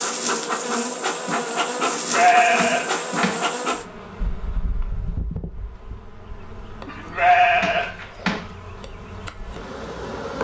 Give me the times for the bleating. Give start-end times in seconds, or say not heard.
1.8-3.5, 6.8-8.6.